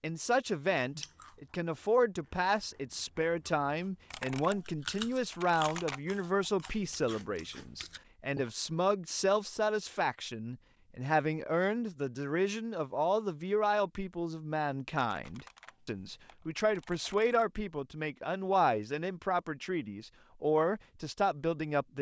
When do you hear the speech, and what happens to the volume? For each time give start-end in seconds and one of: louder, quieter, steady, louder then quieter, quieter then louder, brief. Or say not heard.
0.0-21.9 steady.